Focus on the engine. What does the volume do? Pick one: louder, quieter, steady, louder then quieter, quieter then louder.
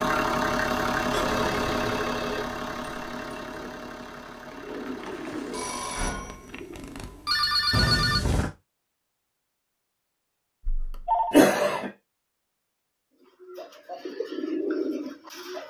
quieter.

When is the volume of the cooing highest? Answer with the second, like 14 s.
15 s.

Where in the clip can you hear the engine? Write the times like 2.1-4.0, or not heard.
0.0-6.0.